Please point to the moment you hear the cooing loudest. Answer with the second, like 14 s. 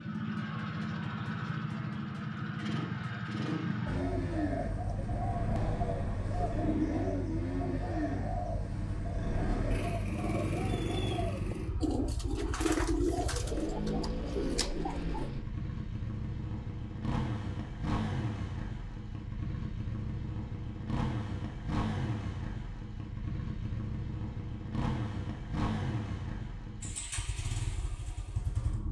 13 s.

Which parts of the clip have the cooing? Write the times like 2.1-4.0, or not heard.
3.9-15.3.